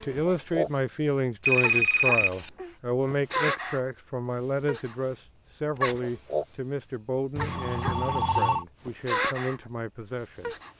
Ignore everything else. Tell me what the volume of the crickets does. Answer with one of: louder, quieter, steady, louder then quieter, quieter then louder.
steady.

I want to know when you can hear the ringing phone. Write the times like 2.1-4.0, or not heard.
1.4-2.5, 7.3-8.7.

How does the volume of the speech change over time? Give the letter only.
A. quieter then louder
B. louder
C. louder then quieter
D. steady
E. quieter
E.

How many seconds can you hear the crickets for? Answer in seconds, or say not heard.
11 s.